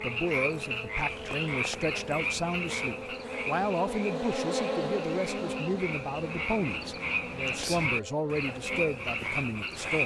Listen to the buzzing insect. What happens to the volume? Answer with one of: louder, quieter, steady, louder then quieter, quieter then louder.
louder then quieter.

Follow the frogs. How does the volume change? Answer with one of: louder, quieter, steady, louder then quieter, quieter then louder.
quieter then louder.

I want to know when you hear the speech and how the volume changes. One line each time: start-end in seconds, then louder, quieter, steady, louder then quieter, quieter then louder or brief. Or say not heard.
0.0-10.0 steady.